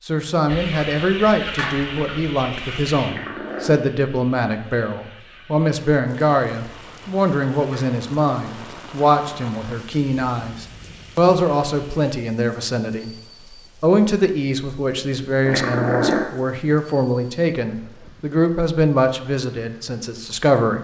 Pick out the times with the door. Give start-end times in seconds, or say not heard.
not heard.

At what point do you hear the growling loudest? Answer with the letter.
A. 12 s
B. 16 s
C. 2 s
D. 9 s
B.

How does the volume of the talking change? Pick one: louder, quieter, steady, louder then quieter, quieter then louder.
steady.